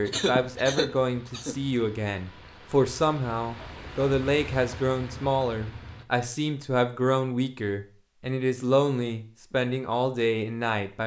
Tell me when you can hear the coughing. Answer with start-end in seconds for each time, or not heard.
0.1-1.6.